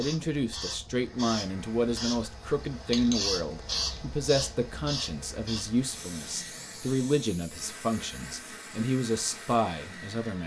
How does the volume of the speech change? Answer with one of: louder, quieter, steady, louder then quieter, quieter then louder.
steady.